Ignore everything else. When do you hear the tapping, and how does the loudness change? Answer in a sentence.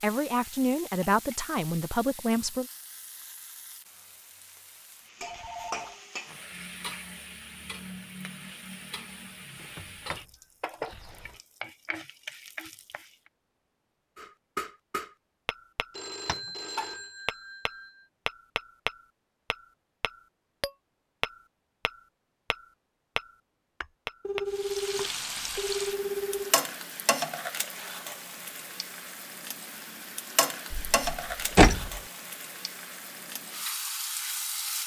The tapping can be heard from 14.2 to 24.5 s, at a steady volume.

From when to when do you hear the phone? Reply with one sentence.
The phone can be heard from 5.2 to 6.0 s, from 15.9 to 18.1 s and from 24.2 to 26.6 s.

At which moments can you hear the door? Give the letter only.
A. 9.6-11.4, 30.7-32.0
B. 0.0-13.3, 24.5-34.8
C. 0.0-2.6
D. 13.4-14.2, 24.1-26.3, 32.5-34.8
A.